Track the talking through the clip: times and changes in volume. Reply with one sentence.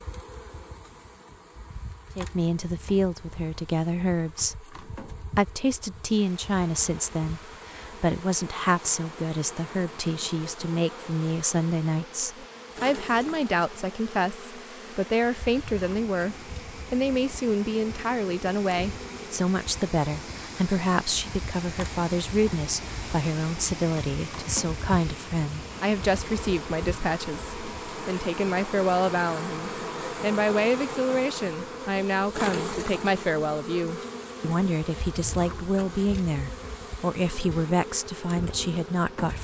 You can hear the talking from 2.1 to 39.3 s, at a steady volume.